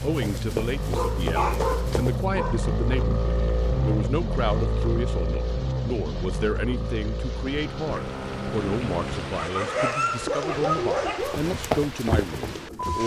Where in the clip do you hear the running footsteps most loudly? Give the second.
12 s.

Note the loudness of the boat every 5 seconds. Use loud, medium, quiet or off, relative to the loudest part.
loud, loud, medium.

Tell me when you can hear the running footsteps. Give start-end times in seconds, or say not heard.
0.0-2.2, 11.2-13.0.